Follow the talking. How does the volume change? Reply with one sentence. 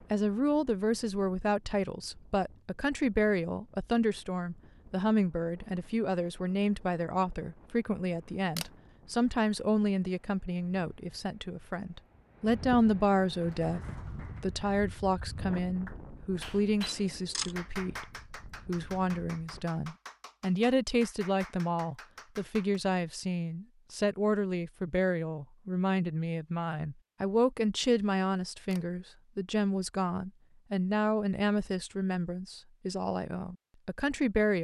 The volume of the talking stays about the same.